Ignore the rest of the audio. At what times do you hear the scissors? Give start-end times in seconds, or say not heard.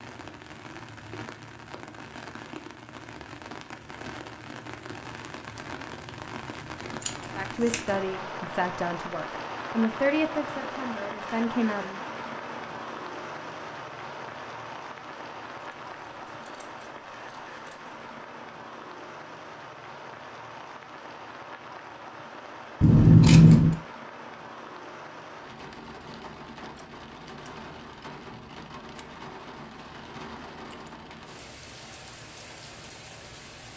7.0-7.8, 15.6-18.1, 22.8-23.8.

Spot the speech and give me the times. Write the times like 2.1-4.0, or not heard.
7.3-12.0.